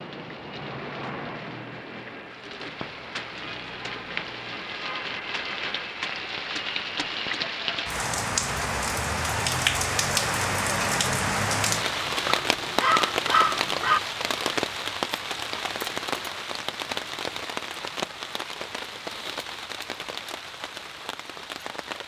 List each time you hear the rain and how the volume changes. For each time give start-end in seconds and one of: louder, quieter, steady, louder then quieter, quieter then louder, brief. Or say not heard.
0.0-22.0 louder then quieter.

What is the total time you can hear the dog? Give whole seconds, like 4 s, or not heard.
2 s.